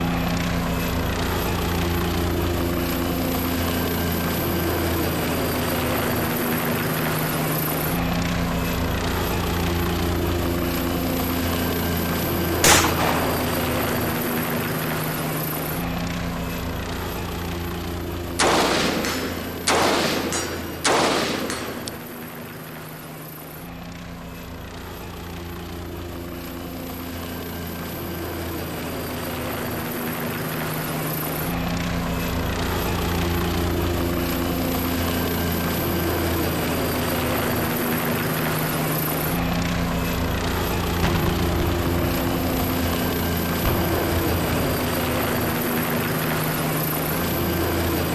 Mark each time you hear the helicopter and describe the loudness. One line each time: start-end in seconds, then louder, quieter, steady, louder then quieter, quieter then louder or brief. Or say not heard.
0.0-48.1 quieter then louder.